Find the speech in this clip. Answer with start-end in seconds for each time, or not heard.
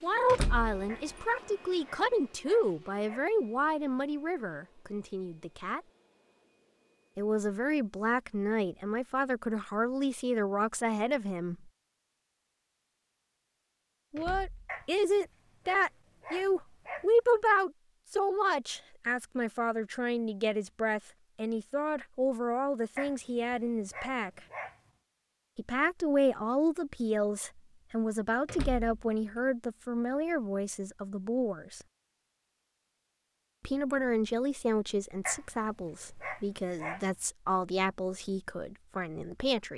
0.0-5.8, 7.2-11.7, 14.1-24.4, 25.6-31.9, 33.6-39.7.